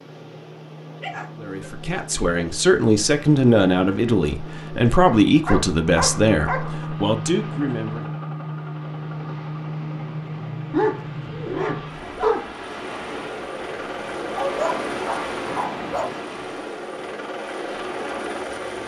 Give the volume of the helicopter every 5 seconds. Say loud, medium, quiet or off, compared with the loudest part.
medium, loud, loud, loud.